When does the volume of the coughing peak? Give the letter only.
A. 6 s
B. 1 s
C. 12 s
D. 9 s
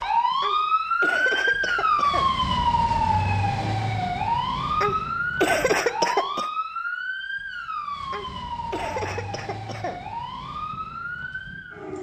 A.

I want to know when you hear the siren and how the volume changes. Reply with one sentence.
The siren can be heard from 0.0 to 11.9 s, getting quieter.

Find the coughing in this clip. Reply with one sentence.
You can hear the coughing from 0.4 to 2.3 s, from 4.8 to 6.5 s and from 8.1 to 10.0 s.